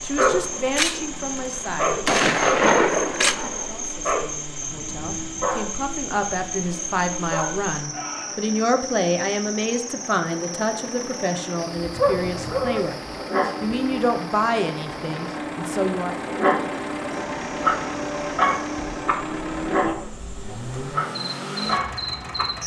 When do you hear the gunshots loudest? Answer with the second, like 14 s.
3 s.